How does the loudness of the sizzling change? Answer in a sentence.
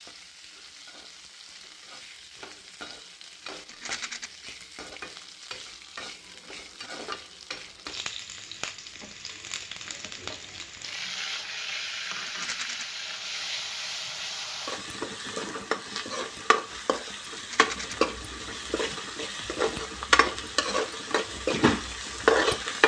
The loudness of the sizzling goes up.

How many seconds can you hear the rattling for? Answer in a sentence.
The rattling can be heard for 2 seconds in total.